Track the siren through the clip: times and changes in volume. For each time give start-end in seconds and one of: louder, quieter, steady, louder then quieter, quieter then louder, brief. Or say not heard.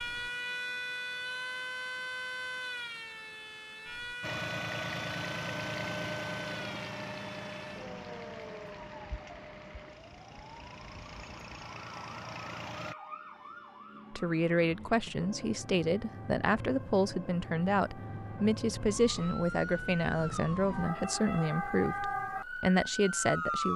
0.0-23.7 quieter then louder.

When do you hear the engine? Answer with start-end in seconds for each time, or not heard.
4.2-12.9.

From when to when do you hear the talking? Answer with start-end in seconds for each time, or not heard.
14.1-23.7.